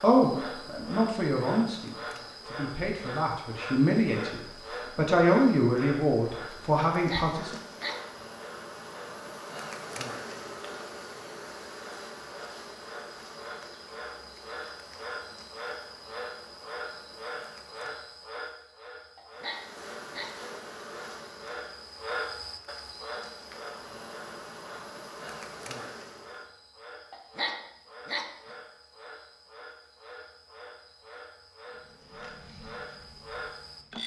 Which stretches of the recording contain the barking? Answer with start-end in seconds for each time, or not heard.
6.9-8.2, 19.1-20.4, 27.1-28.4.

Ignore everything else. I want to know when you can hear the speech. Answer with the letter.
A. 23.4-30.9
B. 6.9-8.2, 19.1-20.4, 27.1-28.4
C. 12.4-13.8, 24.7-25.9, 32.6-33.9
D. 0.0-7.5
D.